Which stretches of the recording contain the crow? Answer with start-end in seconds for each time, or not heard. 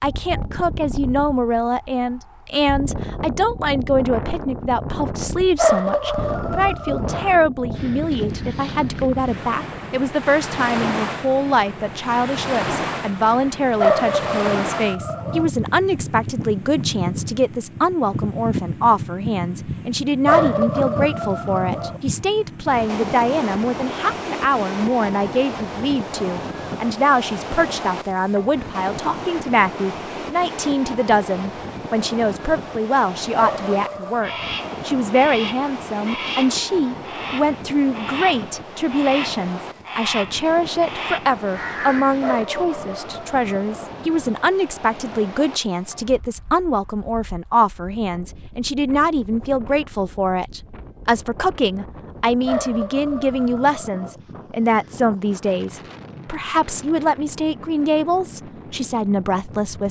34.2-42.4.